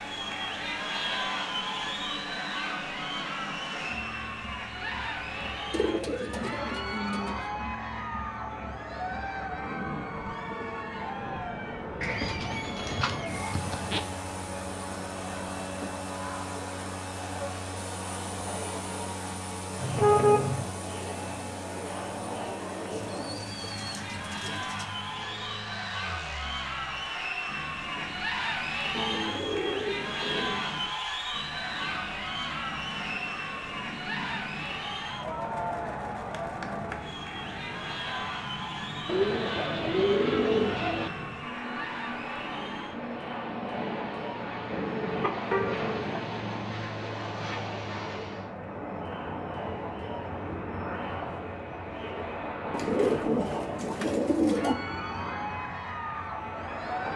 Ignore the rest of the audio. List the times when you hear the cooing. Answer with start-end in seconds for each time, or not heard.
5.7-7.5, 12.0-14.0, 22.9-24.9, 28.9-30.6, 39.0-41.1, 52.7-54.8.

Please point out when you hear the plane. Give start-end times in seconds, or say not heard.
0.0-57.1.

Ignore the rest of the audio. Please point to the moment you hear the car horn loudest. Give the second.
20 s.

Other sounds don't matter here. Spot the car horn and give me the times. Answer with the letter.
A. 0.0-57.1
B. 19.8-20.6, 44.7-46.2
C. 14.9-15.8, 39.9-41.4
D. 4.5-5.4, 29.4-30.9
B.